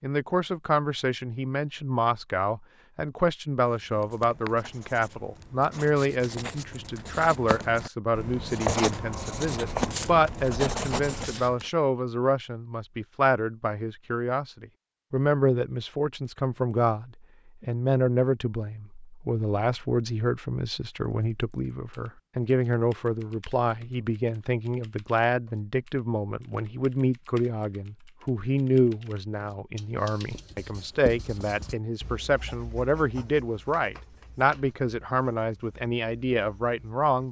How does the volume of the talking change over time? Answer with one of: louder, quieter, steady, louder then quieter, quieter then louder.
steady.